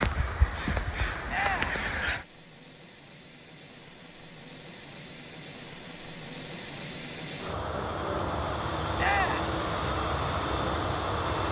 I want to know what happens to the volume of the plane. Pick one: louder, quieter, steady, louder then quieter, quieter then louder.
louder.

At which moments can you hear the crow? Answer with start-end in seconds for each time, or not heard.
0.0-2.2.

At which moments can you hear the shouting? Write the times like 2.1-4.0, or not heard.
1.2-1.8, 8.9-9.5.